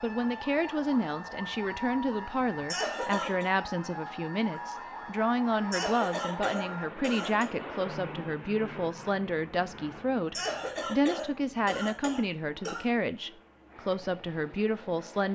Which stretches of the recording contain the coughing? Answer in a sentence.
You can hear the coughing from 2.7 to 3.5 s, from 5.7 to 7.5 s and from 10.3 to 12.8 s.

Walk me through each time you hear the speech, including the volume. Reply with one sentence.
You can hear the speech from 0.0 to 15.3 s, at a steady volume.